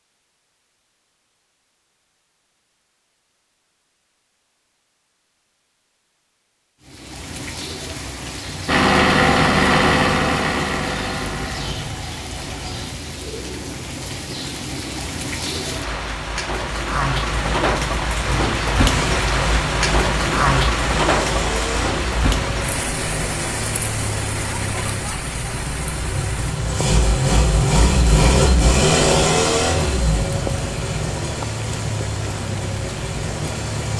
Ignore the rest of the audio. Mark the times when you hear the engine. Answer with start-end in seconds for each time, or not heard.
8.7-12.9, 17.2-33.9.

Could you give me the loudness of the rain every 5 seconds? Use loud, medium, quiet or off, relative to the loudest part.
off, medium, medium, loud, loud, medium, medium.